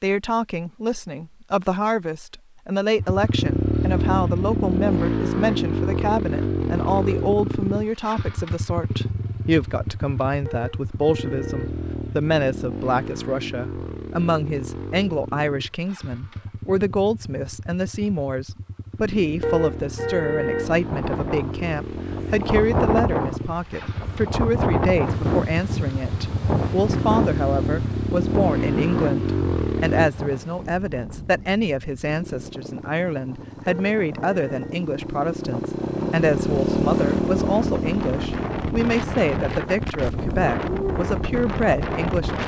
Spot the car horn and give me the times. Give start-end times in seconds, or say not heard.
10.4-11.8, 19.4-20.8, 33.6-34.8.